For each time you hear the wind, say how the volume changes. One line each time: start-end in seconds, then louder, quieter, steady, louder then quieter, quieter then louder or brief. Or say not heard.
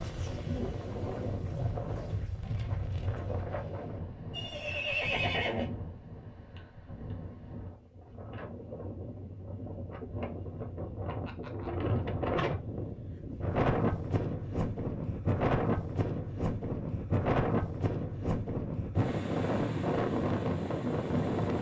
0.0-21.5 quieter then louder.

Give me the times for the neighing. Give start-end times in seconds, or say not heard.
4.3-5.7.